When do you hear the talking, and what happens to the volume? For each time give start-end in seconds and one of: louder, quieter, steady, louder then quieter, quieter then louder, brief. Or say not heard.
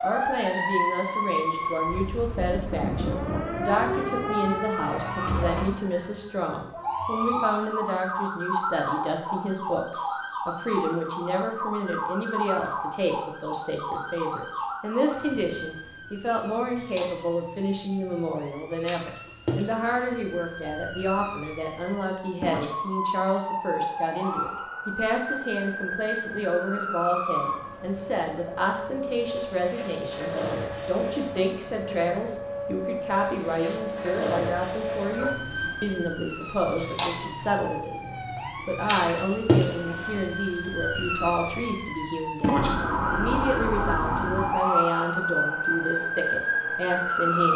0.0-47.5 steady.